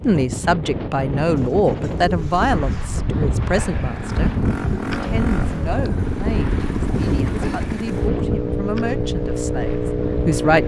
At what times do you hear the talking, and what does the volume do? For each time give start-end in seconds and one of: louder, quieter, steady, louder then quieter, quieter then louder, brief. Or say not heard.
0.0-10.6 quieter.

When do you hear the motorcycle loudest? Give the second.
10 s.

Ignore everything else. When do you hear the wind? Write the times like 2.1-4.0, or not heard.
0.0-10.6.